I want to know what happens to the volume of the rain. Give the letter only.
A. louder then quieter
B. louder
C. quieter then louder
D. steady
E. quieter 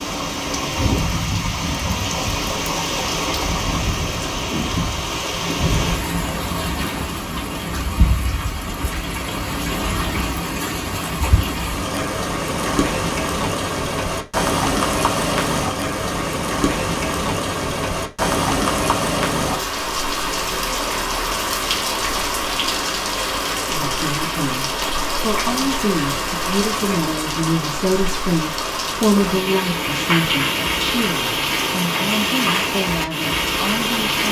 D.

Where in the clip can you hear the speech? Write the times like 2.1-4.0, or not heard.
23.6-34.2.